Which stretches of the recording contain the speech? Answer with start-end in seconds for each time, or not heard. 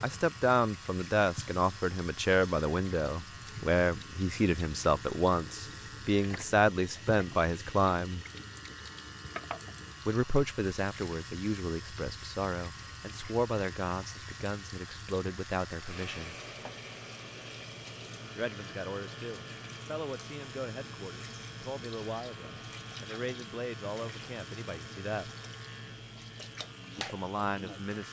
0.0-8.2, 10.1-16.4, 18.4-25.3, 26.9-28.0.